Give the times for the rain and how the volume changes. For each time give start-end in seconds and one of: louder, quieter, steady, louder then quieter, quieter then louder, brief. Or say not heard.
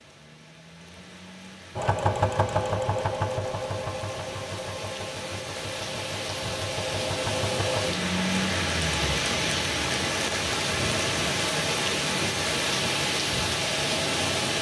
0.0-14.5 louder.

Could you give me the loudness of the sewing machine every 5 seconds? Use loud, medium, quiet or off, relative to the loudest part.
loud, medium, off.